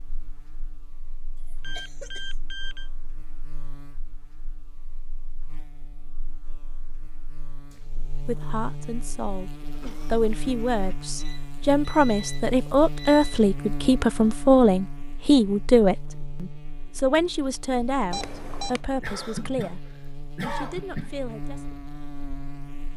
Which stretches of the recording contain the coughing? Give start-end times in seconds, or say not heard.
1.4-2.4, 9.7-11.1, 19.0-21.1.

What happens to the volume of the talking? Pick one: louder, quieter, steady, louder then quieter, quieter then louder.
louder then quieter.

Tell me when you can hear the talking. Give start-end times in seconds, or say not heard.
8.2-21.6.